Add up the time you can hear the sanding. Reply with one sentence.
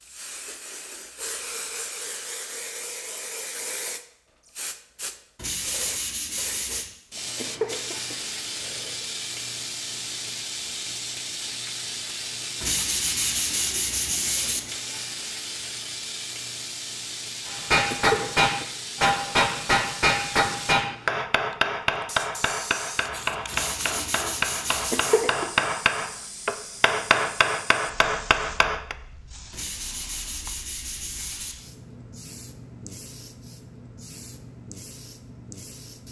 You can hear the sanding for 7 seconds altogether.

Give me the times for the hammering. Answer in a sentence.
You can hear the hammering from 17.4 to 28.9 s.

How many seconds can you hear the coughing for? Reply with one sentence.
The coughing can be heard for 4 seconds in total.